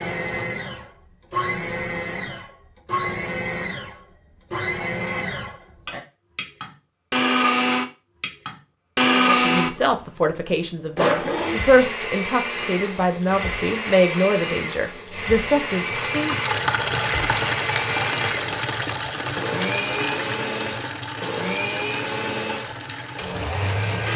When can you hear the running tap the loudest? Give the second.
17 s.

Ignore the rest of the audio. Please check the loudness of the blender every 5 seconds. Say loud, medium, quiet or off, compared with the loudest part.
medium, loud, medium, medium, medium.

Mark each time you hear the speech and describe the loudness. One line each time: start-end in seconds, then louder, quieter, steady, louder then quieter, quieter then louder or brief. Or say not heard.
9.2-16.4 steady.